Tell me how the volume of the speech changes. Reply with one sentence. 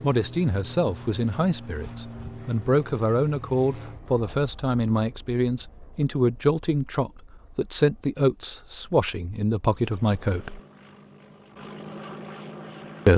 The loudness of the speech stays about the same.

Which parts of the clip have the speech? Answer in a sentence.
The speech can be heard from 0.0 to 10.6 s.